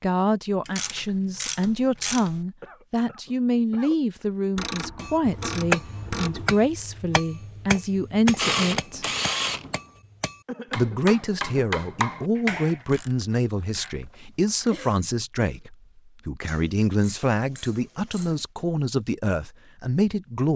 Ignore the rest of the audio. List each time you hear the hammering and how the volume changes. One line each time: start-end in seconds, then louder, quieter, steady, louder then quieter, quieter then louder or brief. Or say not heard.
5.0-12.8 quieter then louder.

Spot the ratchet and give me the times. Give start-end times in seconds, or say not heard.
0.7-2.5, 4.5-6.6, 8.2-9.8, 12.7-14.8, 16.4-18.4.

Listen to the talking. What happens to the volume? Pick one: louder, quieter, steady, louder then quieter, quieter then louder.
steady.